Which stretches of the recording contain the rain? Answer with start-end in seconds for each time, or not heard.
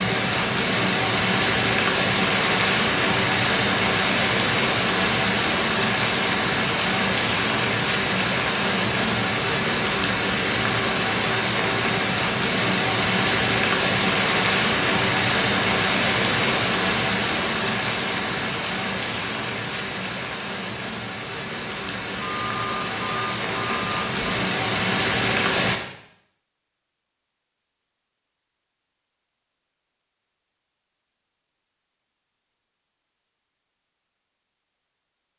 0.0-25.8.